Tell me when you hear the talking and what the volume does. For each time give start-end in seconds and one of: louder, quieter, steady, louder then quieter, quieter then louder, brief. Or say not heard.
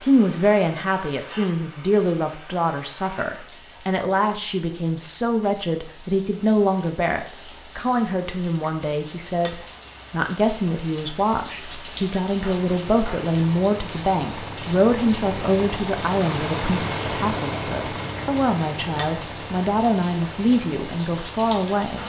0.0-22.0 steady.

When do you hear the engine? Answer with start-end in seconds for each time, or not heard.
12.7-21.9.